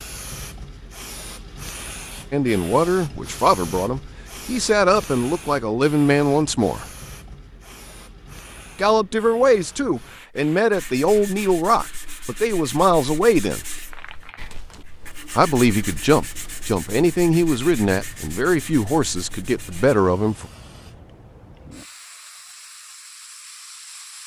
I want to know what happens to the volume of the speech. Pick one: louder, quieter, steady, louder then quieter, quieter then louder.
steady.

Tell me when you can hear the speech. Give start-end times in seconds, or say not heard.
2.3-6.8, 8.8-13.7, 15.3-20.4.